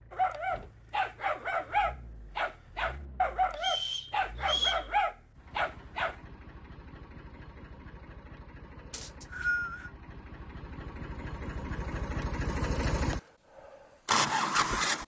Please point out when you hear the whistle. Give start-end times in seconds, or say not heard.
3.6-4.8, 8.9-9.9.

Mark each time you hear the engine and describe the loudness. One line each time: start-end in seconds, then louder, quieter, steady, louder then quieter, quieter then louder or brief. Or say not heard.
0.0-15.0 louder.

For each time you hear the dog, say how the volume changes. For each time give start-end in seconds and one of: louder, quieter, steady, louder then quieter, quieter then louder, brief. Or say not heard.
0.1-6.2 steady.